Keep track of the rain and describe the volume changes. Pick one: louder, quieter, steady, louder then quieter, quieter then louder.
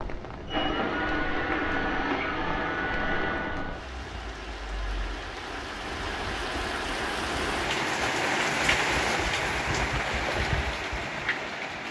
louder.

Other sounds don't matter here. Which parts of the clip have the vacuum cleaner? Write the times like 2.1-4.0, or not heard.
0.3-3.9.